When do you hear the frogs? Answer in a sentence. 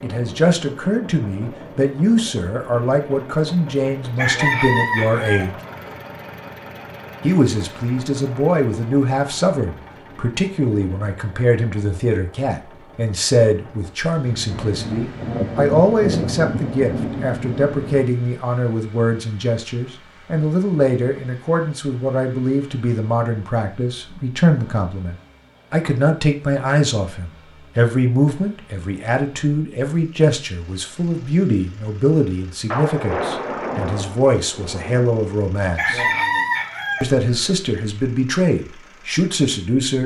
The frogs can't be heard in this clip.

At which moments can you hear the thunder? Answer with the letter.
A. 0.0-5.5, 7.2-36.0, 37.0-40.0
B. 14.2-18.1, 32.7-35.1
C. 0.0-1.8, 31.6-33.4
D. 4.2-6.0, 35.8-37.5
B.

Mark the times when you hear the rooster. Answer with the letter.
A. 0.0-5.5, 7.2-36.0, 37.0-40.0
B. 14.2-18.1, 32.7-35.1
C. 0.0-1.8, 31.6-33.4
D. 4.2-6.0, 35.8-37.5
D.